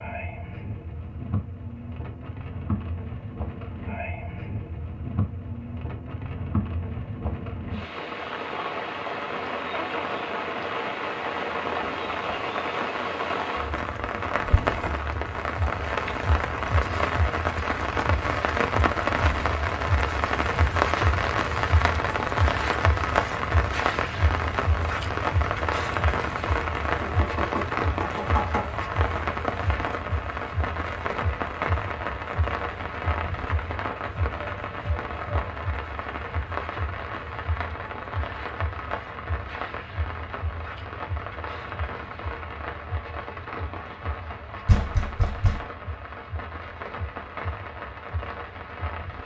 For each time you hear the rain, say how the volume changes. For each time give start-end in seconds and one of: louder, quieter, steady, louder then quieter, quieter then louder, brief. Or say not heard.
0.0-49.2 louder then quieter.